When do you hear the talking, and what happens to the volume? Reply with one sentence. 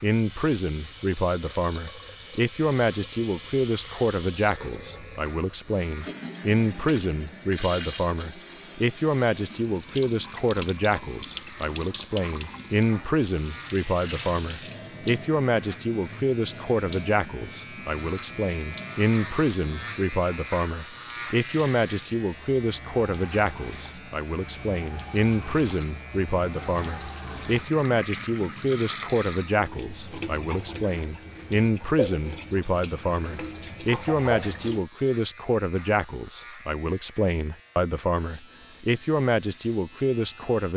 You can hear the talking from 0.0 to 40.7 s, at a steady volume.